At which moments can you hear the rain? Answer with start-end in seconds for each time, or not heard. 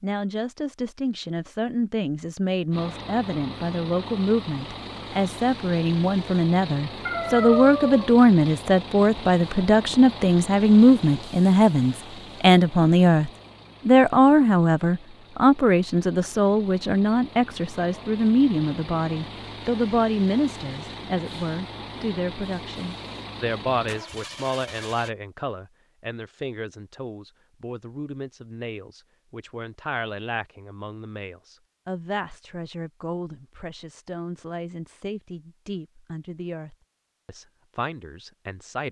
not heard.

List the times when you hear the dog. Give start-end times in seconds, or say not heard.
7.0-8.2.